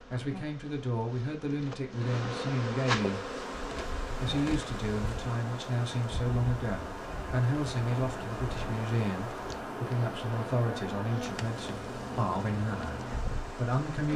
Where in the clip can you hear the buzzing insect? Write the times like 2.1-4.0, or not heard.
0.0-14.1.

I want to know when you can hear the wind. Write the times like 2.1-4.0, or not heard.
3.1-14.1.